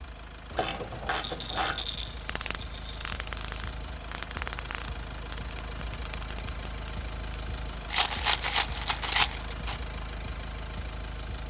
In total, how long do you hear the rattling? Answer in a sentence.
The rattling can be heard for 4 seconds in total.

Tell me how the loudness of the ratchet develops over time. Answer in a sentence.
The loudness of the ratchet goes down.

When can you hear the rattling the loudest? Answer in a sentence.
The loudest moment of the rattling is at 9 seconds.